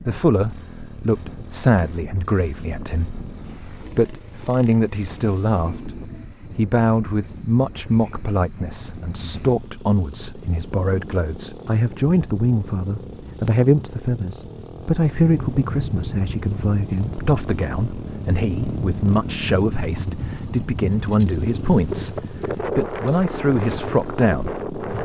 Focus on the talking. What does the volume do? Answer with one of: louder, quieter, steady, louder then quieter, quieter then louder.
steady.